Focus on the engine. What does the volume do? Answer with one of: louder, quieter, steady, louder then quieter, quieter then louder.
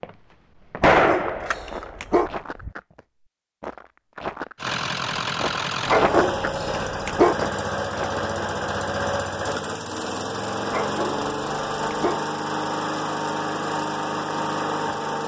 steady.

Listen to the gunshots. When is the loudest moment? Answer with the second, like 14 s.
1 s.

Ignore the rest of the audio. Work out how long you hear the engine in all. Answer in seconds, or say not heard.
11 s.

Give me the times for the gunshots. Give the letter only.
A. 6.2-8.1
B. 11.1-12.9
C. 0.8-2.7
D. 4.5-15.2
C.